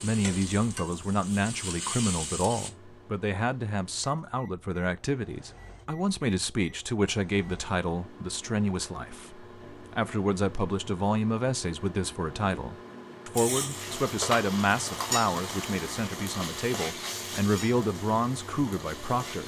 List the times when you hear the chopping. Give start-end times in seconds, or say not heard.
not heard.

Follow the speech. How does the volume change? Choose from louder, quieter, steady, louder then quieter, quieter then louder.
steady.